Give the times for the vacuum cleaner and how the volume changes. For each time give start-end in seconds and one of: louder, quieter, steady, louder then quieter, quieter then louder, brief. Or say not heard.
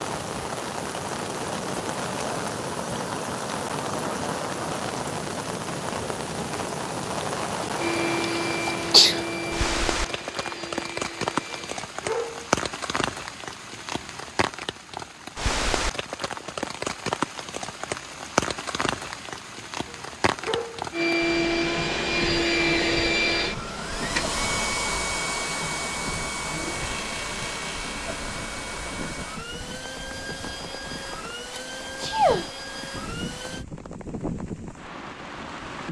7.8-11.8 quieter
20.9-33.6 quieter.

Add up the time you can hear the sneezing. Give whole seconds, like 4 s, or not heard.
2 s.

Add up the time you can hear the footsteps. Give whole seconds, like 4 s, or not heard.
not heard.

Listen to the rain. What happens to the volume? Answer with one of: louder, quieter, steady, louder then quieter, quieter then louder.
quieter.